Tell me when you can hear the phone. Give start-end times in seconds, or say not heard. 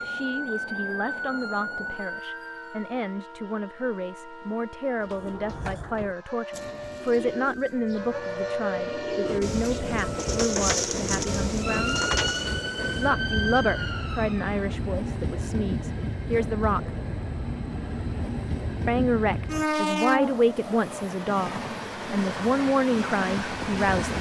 not heard.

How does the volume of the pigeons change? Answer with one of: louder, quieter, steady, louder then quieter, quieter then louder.
louder.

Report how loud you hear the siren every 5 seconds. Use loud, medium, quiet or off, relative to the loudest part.
loud, loud, loud, off, off.